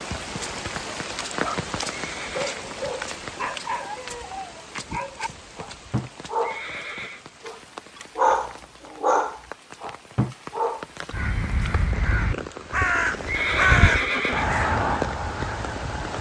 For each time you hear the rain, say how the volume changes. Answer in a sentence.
You can hear the rain from 0.0 to 16.1 s, getting quieter then louder.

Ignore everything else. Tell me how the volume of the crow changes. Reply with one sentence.
The loudness of the crow goes up, then down.